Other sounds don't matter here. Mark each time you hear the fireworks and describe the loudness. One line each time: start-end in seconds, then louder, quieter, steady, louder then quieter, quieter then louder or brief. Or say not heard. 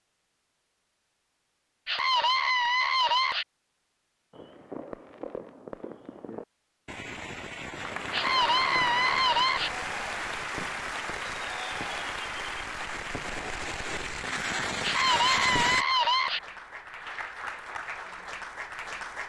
4.3-15.8 louder.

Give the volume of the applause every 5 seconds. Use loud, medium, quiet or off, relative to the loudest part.
off, loud, loud, medium.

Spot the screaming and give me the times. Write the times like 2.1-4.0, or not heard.
1.9-3.5, 8.1-9.7, 14.8-16.4.